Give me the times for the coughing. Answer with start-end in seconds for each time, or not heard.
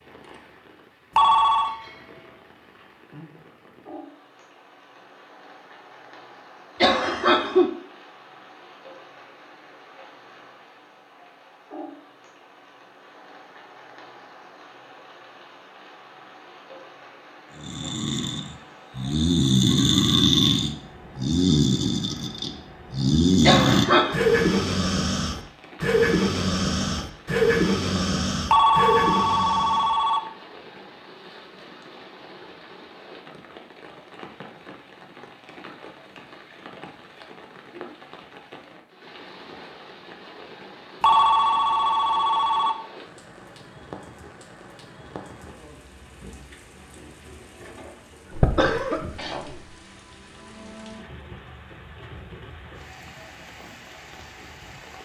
6.8-7.7, 23.4-24.2, 48.4-49.6.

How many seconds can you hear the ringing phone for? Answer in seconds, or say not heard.
4 s.